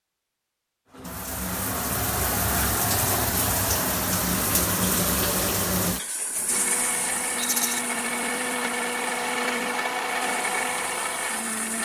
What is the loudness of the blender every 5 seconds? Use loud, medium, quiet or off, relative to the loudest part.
off, loud, loud.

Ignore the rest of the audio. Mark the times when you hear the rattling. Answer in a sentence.
The rattling can be heard from 7.3 to 7.8 s.